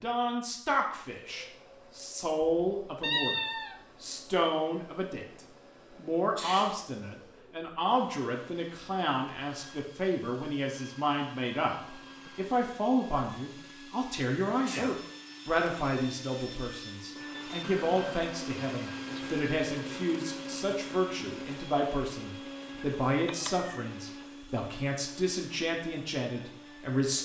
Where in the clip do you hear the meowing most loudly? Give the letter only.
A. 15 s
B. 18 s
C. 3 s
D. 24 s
C.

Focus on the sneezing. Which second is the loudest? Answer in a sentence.
The loudest moment of the sneezing is at 15 seconds.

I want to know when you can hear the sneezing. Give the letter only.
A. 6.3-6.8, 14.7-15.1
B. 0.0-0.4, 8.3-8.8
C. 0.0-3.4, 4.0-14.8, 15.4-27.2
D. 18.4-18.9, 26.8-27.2
A.